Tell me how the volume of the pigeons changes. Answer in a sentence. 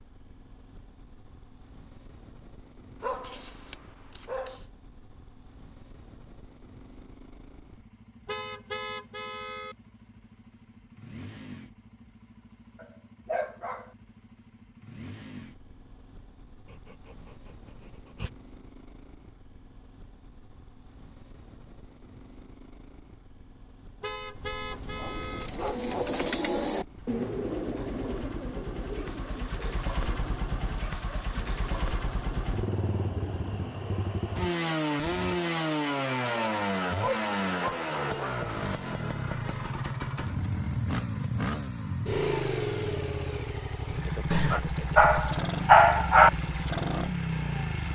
The loudness of the pigeons goes down.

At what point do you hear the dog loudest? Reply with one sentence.
The loudest moment of the dog is at 46 seconds.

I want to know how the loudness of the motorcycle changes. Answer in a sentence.
The loudness of the motorcycle goes up.